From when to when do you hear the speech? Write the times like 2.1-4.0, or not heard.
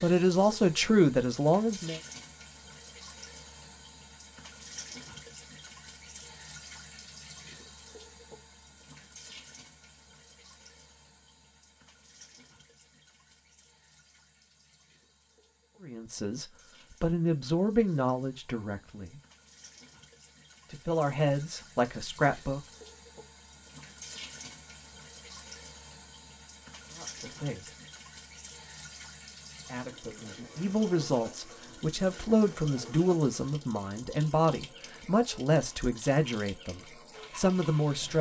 0.0-2.0, 15.8-19.2, 20.7-22.6, 26.9-27.8, 29.6-38.1.